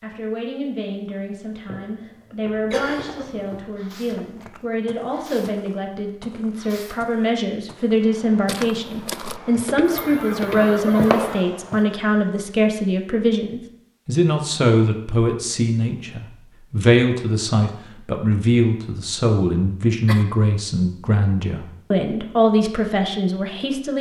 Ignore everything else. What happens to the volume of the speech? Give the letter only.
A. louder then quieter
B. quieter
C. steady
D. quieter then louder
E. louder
E.